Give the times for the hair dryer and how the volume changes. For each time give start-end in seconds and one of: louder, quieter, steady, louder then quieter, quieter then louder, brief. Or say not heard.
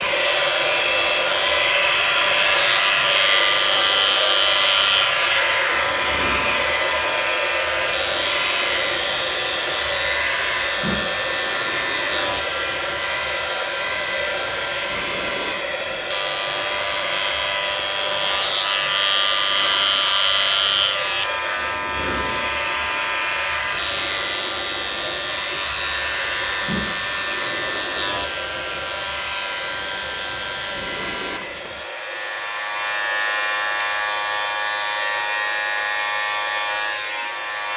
0.0-37.7 quieter.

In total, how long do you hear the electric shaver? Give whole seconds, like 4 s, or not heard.
38 s.